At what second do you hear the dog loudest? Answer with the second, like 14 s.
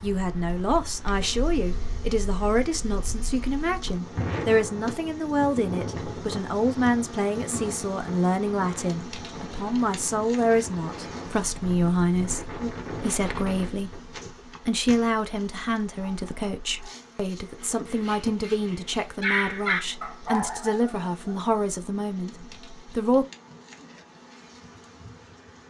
19 s.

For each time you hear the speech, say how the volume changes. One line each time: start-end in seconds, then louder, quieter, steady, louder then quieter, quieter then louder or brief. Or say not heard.
0.0-14.0 steady
14.7-23.2 steady.